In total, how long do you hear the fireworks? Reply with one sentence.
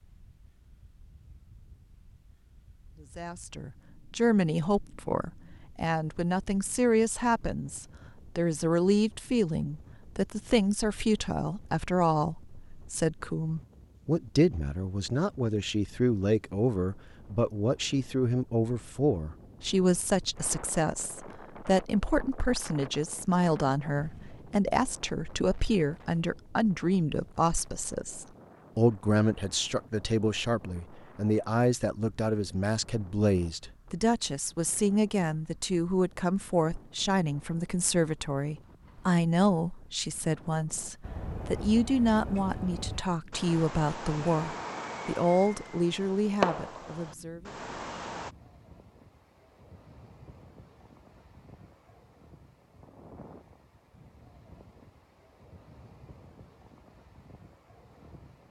The fireworks can be heard for 7 seconds in total.